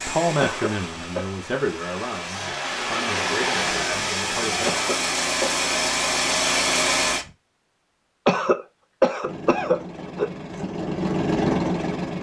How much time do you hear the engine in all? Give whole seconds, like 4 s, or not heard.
10 s.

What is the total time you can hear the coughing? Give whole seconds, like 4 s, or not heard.
4 s.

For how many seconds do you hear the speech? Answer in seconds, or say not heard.
5 s.